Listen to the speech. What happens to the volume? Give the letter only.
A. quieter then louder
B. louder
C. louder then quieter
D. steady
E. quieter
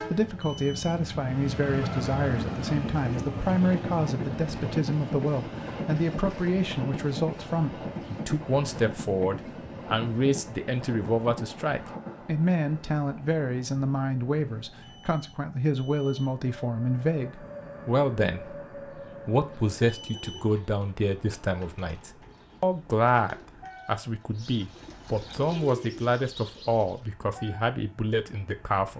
D.